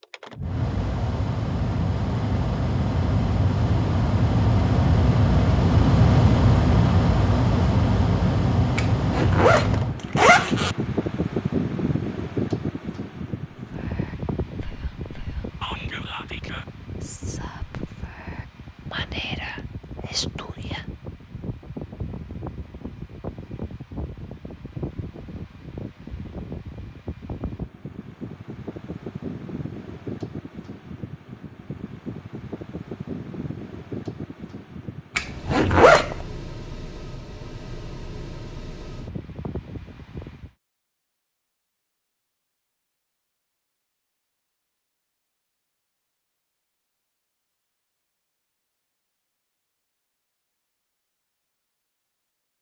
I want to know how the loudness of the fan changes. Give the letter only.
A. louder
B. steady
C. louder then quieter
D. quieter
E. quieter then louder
D.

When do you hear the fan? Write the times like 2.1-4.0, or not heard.
0.0-40.5.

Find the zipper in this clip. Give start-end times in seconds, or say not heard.
8.8-10.8, 35.1-36.1.